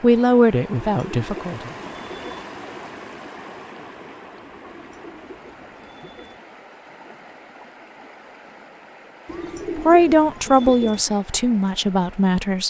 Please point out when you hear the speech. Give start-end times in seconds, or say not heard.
0.0-1.7, 9.8-12.6.